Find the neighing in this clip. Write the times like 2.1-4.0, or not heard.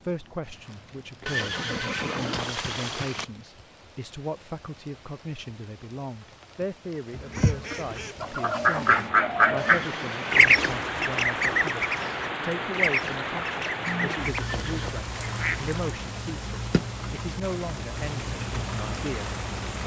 1.2-3.2, 9.6-10.8, 14.4-14.9.